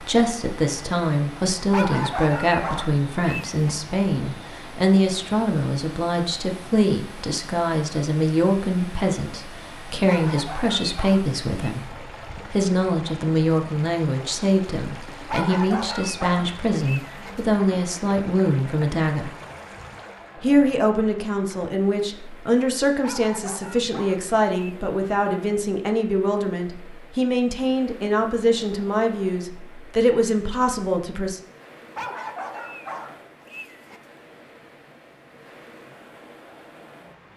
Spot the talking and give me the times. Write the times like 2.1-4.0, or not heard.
0.0-19.4, 20.4-31.4.